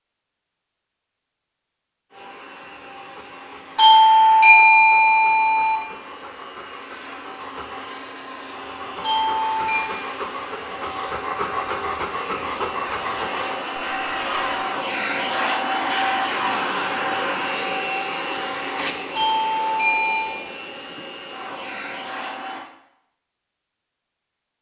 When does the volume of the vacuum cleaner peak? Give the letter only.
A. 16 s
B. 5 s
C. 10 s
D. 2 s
A.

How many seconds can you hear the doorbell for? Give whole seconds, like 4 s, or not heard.
4 s.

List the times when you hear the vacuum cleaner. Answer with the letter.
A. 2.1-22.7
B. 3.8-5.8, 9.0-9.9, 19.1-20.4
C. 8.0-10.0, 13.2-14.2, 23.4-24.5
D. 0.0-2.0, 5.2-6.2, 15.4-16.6
A.